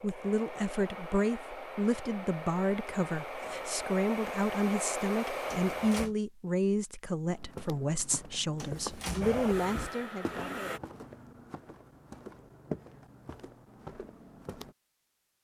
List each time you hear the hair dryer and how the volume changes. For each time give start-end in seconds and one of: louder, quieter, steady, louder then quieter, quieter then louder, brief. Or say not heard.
0.0-6.1 louder
9.2-10.8 brief.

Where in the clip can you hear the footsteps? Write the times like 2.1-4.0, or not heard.
7.2-14.8.